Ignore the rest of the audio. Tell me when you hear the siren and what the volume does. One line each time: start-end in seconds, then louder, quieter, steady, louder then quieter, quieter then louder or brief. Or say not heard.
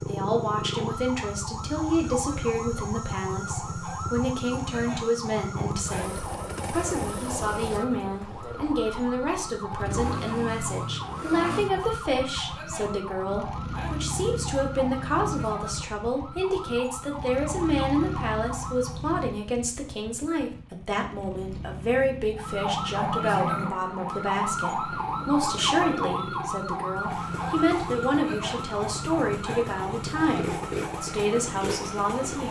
0.0-19.0 steady
22.3-32.4 quieter.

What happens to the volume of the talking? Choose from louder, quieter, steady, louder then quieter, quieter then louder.
steady.